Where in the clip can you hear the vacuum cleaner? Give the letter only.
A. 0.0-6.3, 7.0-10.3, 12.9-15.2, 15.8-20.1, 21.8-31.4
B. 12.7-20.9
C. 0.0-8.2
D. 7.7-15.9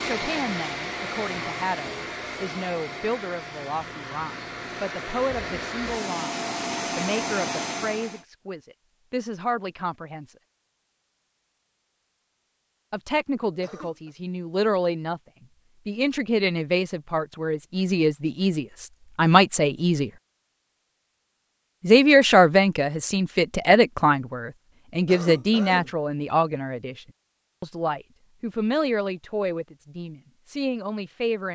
C.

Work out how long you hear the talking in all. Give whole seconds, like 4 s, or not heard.
26 s.